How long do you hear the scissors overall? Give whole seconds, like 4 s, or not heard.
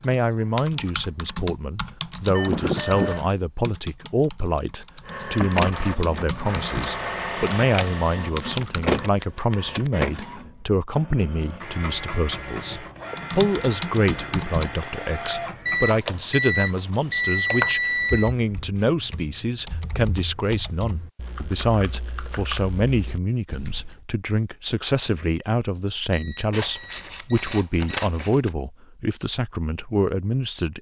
4 s.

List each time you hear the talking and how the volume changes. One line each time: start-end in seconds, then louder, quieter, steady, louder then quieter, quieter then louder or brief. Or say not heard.
0.0-30.7 steady.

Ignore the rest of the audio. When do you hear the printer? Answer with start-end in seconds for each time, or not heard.
5.0-16.0.